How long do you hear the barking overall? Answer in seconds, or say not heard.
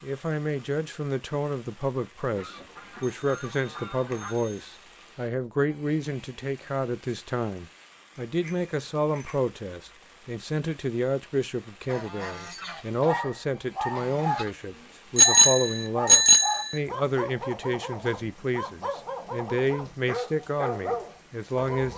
9 s.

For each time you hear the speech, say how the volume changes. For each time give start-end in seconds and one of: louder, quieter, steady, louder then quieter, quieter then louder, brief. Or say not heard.
0.0-21.9 steady.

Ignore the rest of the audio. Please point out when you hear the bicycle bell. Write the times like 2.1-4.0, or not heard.
3.0-4.8, 8.4-9.3, 15.2-16.8.